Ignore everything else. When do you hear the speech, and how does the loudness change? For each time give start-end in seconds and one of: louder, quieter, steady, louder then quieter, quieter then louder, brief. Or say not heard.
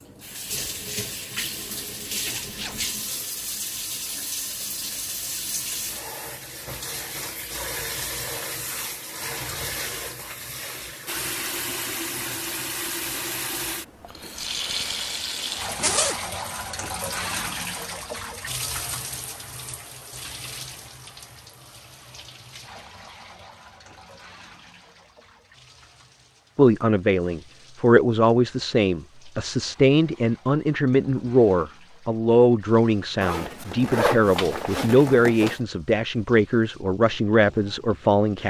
26.6-38.4 steady.